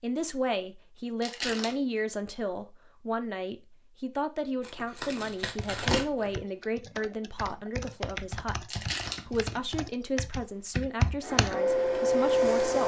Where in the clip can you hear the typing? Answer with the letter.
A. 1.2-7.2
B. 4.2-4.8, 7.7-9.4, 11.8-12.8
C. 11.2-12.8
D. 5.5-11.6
D.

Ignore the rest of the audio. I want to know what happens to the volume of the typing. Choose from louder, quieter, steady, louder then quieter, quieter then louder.
louder.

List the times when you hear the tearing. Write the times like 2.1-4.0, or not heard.
1.2-1.8, 4.6-6.4, 8.7-9.8.